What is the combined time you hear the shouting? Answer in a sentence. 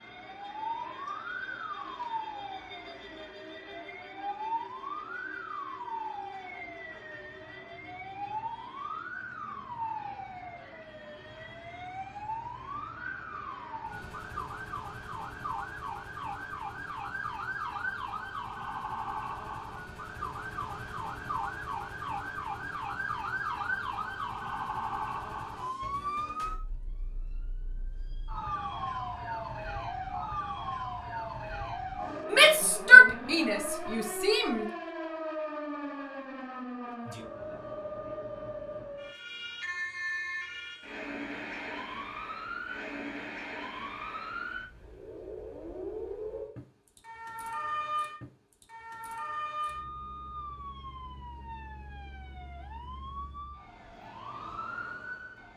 The shouting can be heard for 2 seconds in total.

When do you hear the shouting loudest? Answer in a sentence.
The loudest moment of the shouting is at 33 seconds.